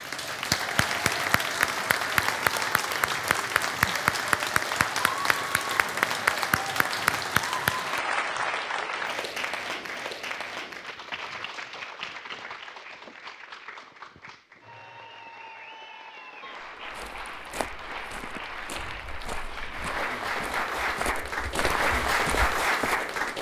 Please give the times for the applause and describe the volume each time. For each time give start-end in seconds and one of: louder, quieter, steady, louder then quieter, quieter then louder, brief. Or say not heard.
0.0-23.3 quieter then louder.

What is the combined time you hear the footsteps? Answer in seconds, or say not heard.
6 s.